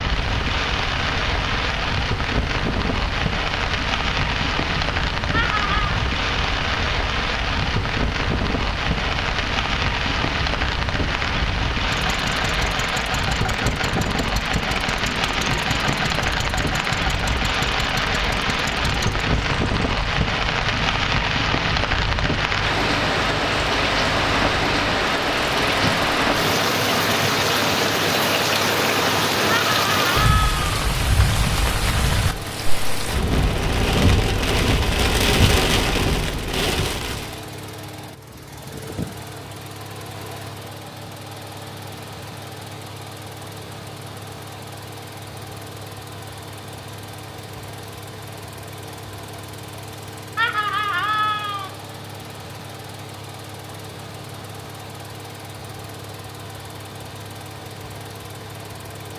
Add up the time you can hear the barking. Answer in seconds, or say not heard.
not heard.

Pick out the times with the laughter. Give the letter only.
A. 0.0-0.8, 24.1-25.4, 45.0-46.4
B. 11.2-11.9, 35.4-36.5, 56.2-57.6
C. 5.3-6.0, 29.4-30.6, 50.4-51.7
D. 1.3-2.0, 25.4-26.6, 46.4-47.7
C.